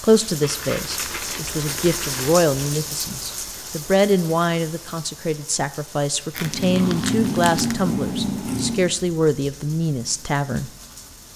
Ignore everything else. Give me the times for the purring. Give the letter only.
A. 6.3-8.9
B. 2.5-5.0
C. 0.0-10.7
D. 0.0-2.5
A.